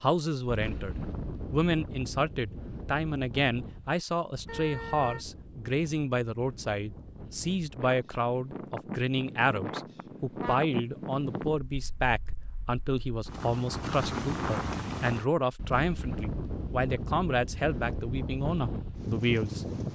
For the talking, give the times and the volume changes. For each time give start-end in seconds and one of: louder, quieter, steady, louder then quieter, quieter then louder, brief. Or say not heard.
0.0-19.6 steady.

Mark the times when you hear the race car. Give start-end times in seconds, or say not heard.
not heard.